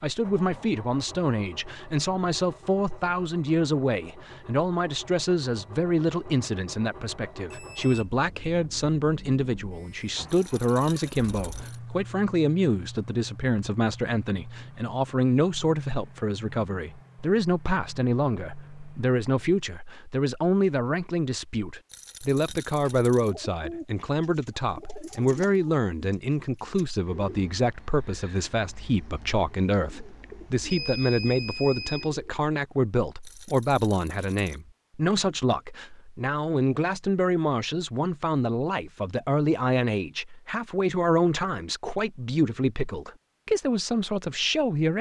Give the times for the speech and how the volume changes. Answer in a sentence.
You can hear the speech from 0.0 to 44.9 s, at a steady volume.